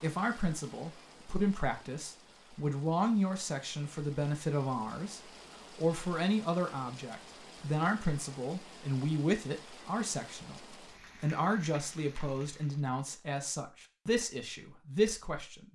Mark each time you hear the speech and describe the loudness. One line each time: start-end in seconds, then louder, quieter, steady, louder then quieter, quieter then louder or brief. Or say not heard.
0.0-15.7 steady.